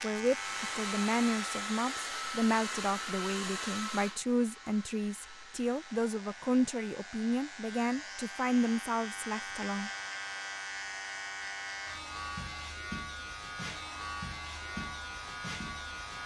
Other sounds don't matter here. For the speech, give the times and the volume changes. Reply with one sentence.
The speech can be heard from 0.0 to 9.9 s, at a steady volume.